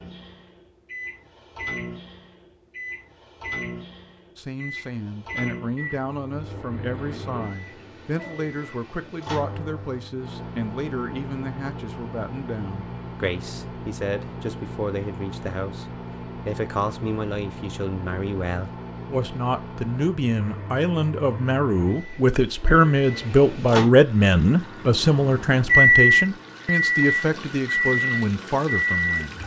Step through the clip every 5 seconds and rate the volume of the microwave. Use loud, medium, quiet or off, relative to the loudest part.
quiet, quiet, quiet, quiet, quiet, loud.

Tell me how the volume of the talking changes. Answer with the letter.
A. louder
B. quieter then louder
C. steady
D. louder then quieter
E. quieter
A.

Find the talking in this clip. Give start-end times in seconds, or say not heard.
4.3-29.4.